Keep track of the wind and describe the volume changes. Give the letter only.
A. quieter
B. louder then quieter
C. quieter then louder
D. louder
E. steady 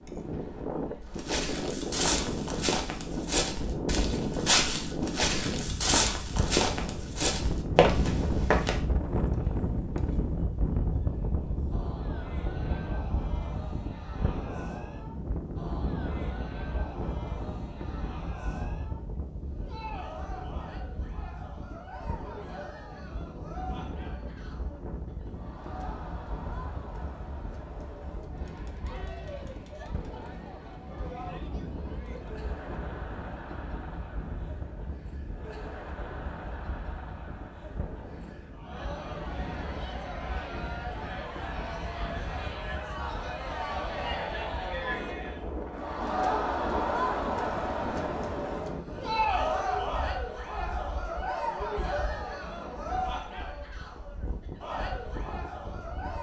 A.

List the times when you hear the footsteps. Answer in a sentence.
You can hear the footsteps from 1.1 to 8.8 s.